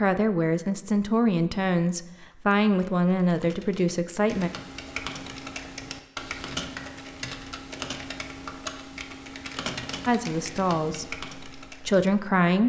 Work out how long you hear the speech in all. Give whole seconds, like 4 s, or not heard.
7 s.